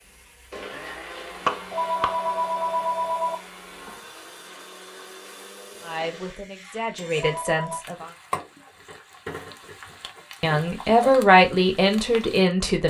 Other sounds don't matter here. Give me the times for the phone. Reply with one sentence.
The phone can be heard from 1.7 to 3.4 s and from 7.2 to 7.8 s.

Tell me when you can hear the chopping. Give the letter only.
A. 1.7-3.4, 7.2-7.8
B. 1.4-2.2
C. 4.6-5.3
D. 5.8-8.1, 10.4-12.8
B.